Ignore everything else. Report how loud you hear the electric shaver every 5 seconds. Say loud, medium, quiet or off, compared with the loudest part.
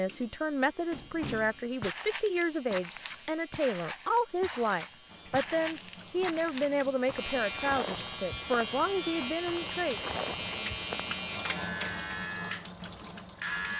quiet, loud, loud.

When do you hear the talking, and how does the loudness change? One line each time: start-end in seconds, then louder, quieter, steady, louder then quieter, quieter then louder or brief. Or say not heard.
0.0-10.0 steady.